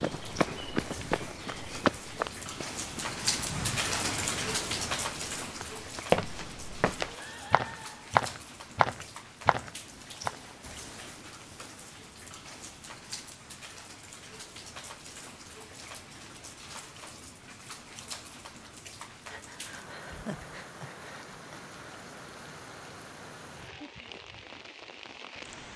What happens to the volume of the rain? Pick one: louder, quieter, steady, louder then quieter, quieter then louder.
quieter.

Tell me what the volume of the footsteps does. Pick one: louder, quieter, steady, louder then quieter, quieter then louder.
quieter then louder.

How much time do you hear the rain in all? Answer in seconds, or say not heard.
26 s.